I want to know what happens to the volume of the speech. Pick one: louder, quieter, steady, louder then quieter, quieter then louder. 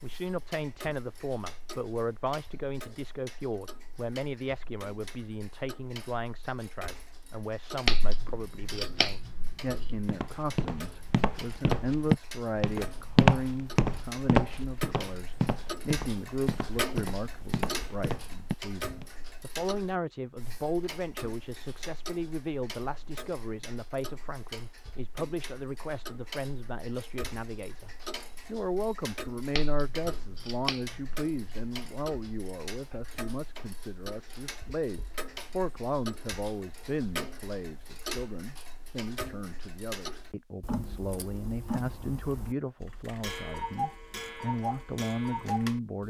steady.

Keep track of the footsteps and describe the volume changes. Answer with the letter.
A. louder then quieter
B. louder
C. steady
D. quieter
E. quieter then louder
A.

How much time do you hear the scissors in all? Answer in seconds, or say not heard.
4 s.